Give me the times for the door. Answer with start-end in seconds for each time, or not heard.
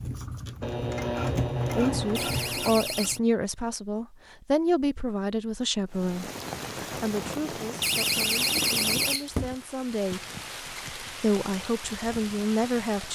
2.1-3.2, 7.8-9.6.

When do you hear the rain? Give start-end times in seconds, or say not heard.
5.8-13.0.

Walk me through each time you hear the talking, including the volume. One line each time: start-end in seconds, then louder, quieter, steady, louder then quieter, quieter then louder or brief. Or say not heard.
1.8-10.2 quieter
11.2-13.0 brief.